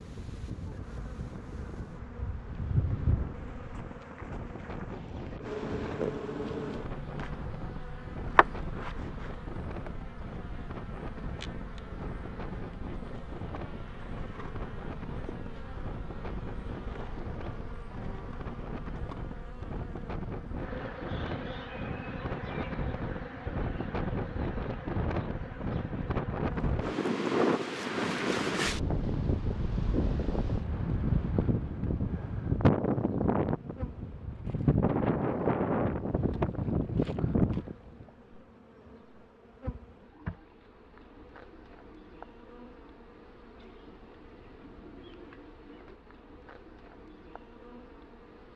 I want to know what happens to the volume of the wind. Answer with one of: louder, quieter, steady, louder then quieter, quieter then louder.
louder.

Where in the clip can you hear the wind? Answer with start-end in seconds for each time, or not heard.
0.0-38.0.